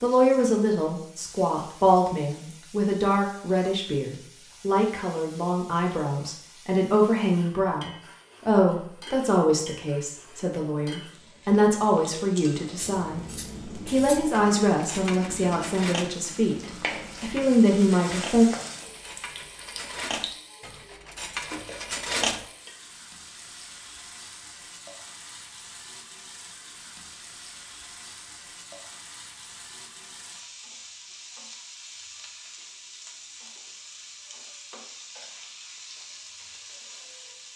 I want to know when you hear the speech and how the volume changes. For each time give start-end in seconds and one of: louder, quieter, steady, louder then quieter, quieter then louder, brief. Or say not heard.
0.0-13.2 steady
13.8-18.4 quieter then louder.